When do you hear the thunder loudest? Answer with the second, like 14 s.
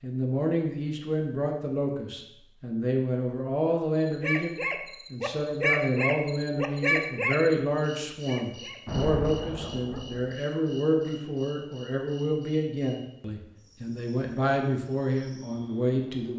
9 s.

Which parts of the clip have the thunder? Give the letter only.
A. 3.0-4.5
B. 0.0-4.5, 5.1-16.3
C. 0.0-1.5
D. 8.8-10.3
D.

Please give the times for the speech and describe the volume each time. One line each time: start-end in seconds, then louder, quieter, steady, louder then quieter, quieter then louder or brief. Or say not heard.
0.0-4.5 quieter then louder
5.1-16.3 steady.